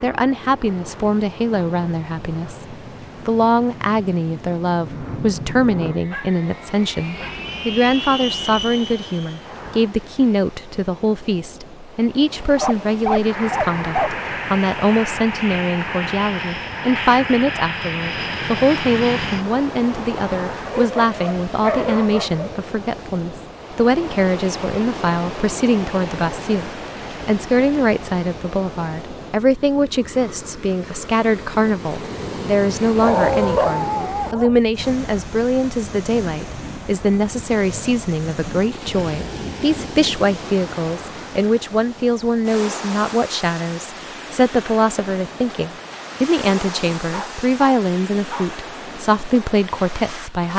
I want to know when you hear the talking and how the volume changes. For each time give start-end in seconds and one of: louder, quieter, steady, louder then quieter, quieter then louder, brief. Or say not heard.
0.0-50.5 steady.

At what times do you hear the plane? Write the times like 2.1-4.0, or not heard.
0.0-9.9, 13.2-20.8.